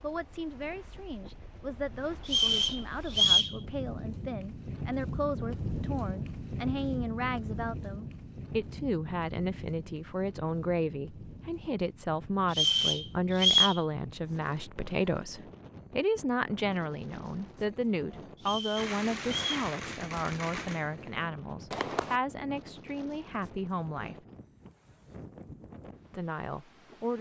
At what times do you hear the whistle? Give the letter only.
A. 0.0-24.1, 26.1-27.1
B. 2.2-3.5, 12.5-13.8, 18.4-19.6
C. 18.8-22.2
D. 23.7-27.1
B.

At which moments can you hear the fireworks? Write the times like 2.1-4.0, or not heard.
18.8-22.2.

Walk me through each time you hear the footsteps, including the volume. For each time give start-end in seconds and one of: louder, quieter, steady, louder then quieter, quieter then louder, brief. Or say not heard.
not heard.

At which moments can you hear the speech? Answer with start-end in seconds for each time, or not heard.
0.0-24.1, 26.1-27.1.